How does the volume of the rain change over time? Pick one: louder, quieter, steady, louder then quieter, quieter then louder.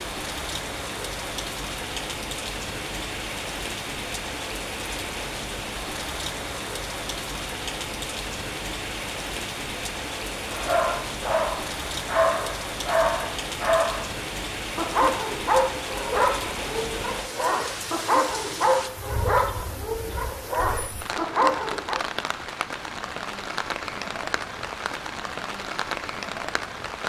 steady.